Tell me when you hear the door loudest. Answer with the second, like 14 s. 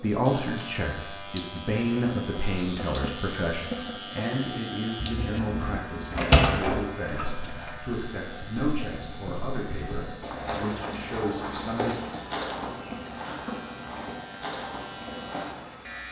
6 s.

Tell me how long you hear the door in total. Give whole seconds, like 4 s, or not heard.
3 s.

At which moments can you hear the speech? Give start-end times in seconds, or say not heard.
0.0-12.0.